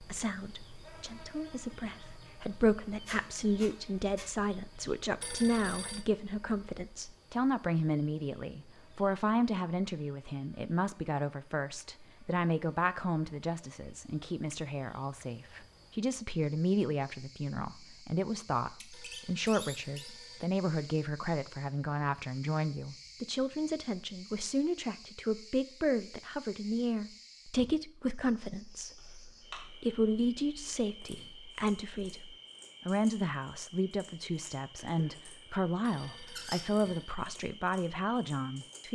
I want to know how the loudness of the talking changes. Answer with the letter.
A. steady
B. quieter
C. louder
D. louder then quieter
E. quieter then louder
A.